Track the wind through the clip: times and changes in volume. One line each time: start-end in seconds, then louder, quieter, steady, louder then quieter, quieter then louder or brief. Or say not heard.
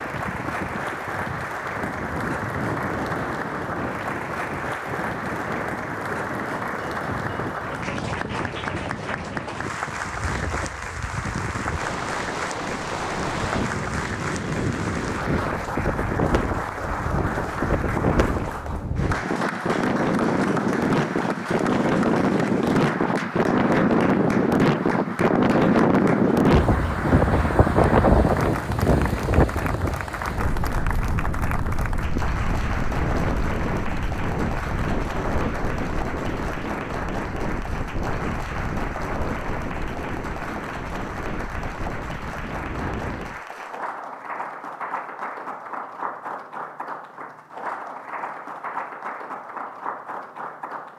0.0-43.4 louder then quieter.